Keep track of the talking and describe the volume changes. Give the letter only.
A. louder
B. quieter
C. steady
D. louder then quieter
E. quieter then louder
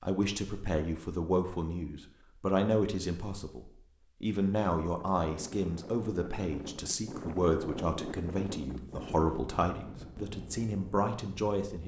C.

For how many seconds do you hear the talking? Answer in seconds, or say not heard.
12 s.